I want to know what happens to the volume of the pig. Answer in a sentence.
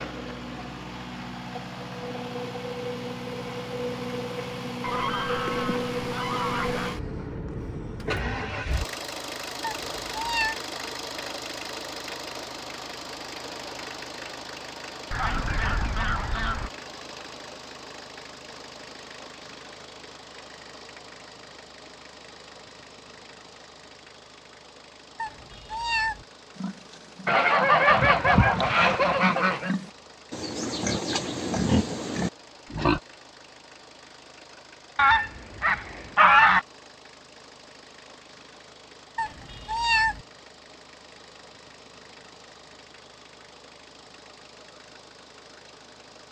The volume of the pig goes up.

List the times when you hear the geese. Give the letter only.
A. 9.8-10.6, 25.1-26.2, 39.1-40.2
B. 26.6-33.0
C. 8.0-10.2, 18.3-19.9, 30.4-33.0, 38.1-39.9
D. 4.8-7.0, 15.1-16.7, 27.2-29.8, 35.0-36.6
D.